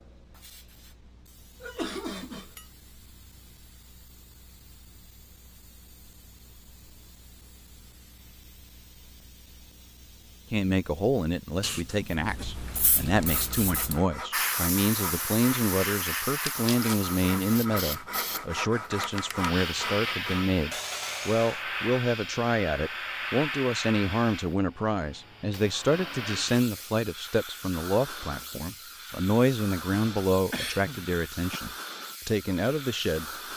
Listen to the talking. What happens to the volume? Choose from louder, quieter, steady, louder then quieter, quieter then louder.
steady.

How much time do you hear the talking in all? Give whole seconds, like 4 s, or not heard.
23 s.